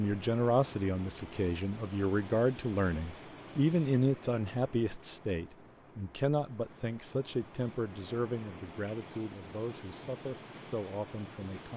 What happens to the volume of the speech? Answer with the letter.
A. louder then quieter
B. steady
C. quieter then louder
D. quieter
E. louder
D.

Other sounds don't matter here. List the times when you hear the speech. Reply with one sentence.
The speech can be heard from 0.0 to 11.7 s.